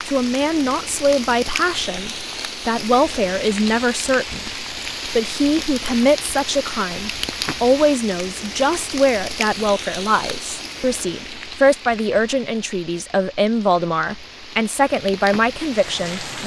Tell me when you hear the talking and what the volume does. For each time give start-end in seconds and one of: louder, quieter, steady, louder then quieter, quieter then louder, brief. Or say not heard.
0.1-16.4 steady.